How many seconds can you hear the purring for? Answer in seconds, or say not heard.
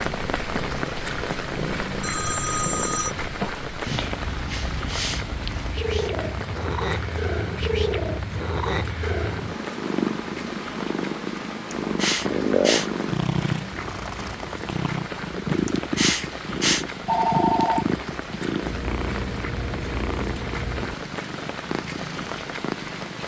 23 s.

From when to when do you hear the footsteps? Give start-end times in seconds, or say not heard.
not heard.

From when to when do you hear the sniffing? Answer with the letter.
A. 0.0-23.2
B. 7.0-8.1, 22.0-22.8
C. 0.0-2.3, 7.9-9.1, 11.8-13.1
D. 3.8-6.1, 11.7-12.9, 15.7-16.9
D.